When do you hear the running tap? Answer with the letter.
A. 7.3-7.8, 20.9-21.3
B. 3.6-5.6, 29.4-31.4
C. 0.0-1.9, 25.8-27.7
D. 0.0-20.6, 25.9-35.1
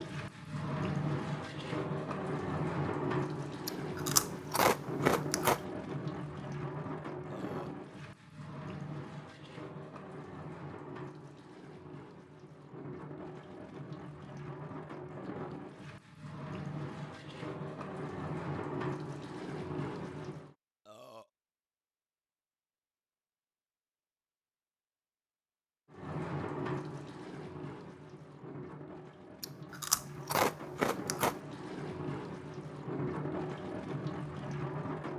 D.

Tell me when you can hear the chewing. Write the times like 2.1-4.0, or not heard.
3.6-5.6, 29.4-31.4.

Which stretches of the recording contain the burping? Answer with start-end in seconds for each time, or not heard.
7.3-7.8, 20.9-21.3.